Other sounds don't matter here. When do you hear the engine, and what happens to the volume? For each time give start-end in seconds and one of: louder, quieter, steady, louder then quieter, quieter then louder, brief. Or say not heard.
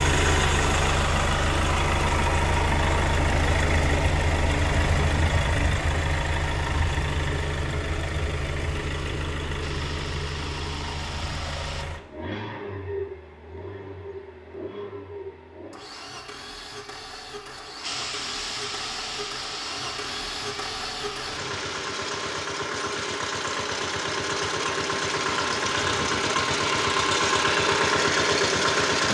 0.0-29.0 quieter then louder.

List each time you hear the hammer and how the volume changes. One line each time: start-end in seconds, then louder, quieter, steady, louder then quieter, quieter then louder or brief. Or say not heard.
not heard.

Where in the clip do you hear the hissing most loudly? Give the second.
18 s.